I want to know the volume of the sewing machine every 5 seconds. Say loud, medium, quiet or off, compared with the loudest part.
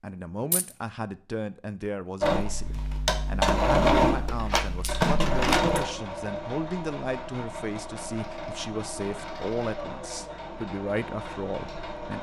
loud, medium, quiet.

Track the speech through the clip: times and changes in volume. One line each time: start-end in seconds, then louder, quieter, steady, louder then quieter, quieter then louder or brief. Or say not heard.
0.0-12.1 steady.